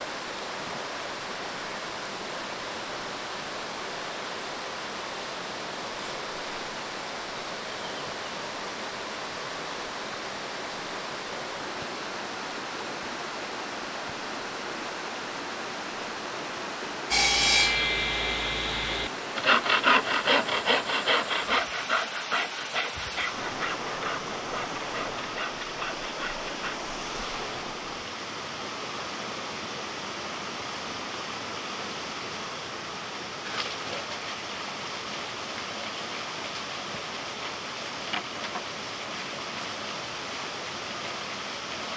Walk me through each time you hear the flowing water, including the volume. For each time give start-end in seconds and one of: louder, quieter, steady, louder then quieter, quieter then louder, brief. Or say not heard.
0.0-41.9 steady.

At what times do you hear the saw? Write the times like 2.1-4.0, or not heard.
17.1-26.8.